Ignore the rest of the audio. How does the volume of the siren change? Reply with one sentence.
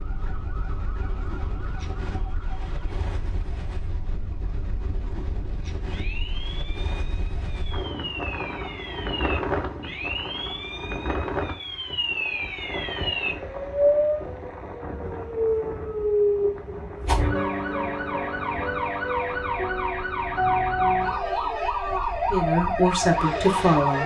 The loudness of the siren goes up.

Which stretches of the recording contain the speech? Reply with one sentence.
The speech can be heard from 22.3 to 24.0 s.